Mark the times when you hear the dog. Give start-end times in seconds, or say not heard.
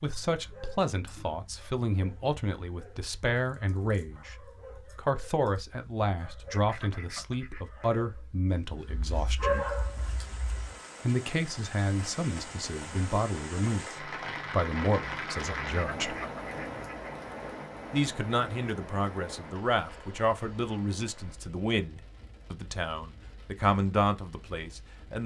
0.0-10.8.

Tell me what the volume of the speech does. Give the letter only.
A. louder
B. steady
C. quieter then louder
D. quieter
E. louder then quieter
B.